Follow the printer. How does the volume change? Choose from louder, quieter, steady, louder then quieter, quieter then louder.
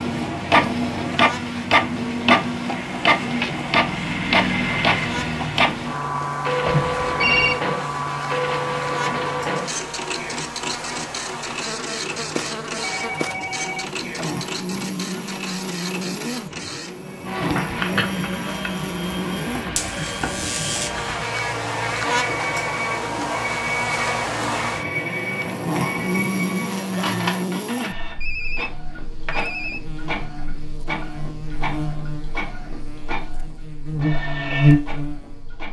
quieter.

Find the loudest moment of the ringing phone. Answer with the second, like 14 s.
7 s.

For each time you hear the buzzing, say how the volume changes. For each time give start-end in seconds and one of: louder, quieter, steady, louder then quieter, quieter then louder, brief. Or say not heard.
0.0-35.6 louder.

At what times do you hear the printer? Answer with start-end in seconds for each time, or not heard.
0.0-35.6.